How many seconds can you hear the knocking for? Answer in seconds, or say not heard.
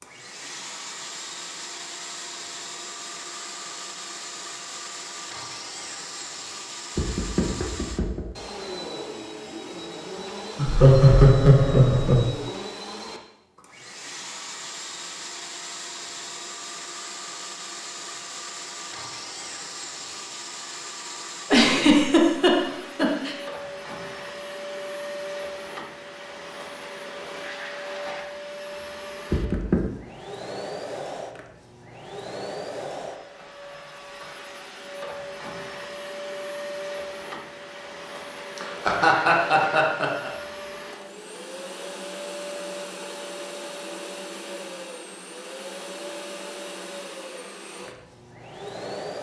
2 s.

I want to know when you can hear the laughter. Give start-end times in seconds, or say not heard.
10.6-12.2, 21.5-23.4, 38.5-40.3.